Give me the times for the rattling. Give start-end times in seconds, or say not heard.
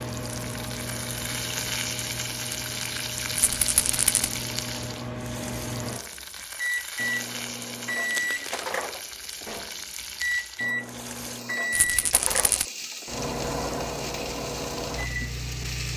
3.4-4.3, 11.7-12.7.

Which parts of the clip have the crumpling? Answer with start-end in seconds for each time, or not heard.
8.1-8.7.